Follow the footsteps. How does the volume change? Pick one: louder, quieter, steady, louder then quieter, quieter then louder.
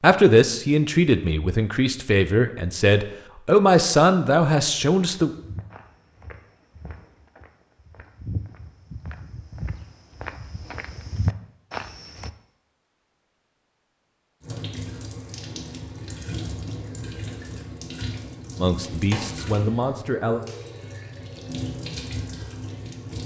louder.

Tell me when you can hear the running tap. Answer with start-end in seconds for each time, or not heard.
14.4-23.2.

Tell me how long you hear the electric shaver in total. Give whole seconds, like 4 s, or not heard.
not heard.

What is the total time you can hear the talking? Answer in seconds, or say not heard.
7 s.